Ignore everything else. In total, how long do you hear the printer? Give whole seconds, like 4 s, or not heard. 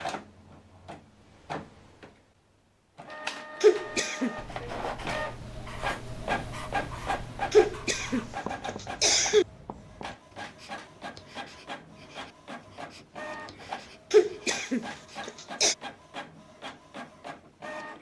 18 s.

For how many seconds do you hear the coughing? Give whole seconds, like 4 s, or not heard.
4 s.